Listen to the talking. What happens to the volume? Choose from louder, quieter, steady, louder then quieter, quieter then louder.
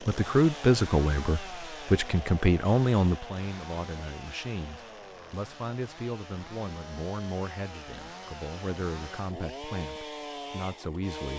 quieter.